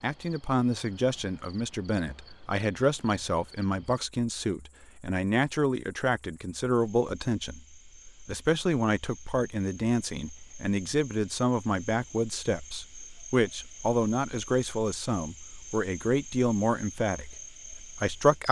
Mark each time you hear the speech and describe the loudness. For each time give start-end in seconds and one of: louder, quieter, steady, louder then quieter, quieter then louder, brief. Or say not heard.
0.0-17.4 steady
17.9-18.4 brief.